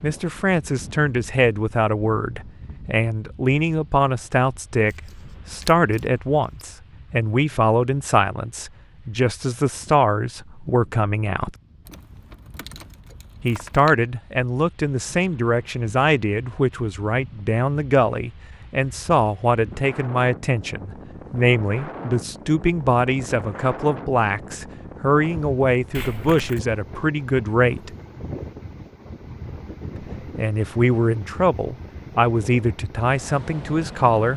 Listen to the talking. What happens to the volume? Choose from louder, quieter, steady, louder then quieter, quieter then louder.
steady.